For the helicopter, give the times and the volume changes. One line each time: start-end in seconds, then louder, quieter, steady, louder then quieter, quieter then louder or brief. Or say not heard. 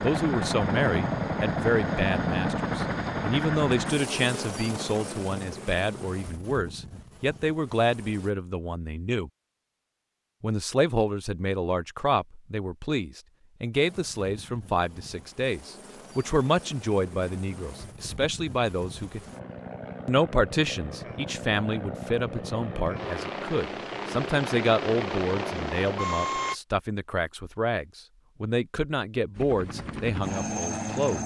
0.0-8.3 quieter
13.7-26.6 louder
29.4-31.2 brief.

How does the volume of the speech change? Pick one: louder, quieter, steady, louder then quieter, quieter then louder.
steady.